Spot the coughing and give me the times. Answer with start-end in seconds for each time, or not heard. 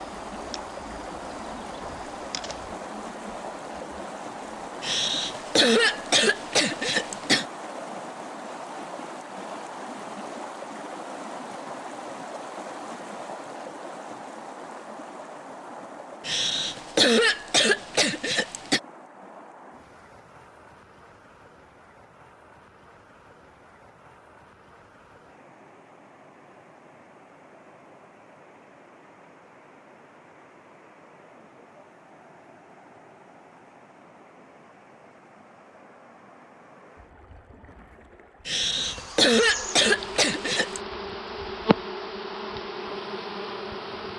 4.8-7.5, 16.2-18.8, 38.5-40.8.